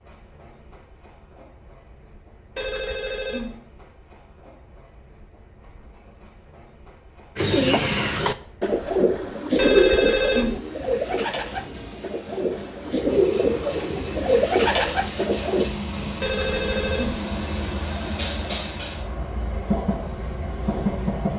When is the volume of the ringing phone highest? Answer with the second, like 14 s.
10 s.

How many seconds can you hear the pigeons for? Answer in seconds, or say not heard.
8 s.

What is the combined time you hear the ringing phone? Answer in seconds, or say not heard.
3 s.